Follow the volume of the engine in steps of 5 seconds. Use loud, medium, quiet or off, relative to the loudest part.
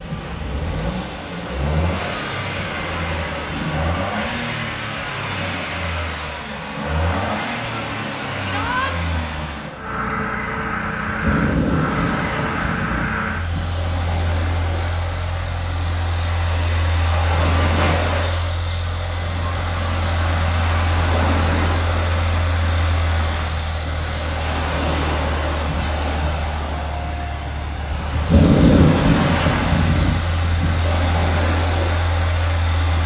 loud, loud, loud, medium, medium, medium, medium.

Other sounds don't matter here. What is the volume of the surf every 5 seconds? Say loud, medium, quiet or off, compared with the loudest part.
quiet, quiet, medium, medium, medium, loud, medium.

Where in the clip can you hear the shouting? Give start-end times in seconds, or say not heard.
8.4-8.9.